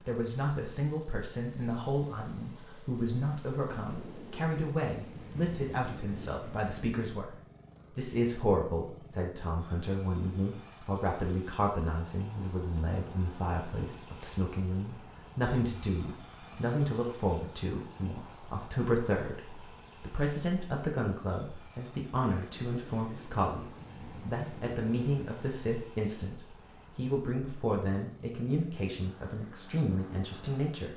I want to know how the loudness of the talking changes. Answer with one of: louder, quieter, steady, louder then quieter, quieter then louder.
steady.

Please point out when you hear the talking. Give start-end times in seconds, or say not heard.
0.1-30.9.